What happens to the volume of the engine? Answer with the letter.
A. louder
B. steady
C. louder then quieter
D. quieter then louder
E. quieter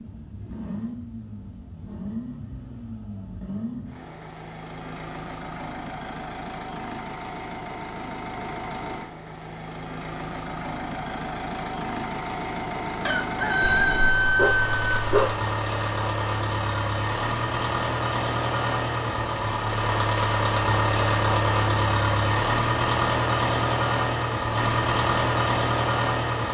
A.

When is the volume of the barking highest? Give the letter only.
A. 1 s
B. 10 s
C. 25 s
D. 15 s
D.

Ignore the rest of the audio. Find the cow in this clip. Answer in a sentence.
The cow can't be heard in this clip.